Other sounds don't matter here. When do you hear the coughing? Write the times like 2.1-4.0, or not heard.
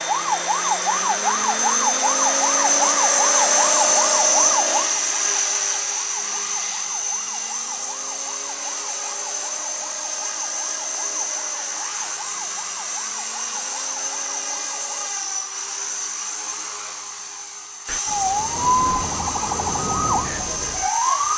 not heard.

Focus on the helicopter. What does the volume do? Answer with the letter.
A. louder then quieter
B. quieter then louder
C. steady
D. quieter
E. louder
D.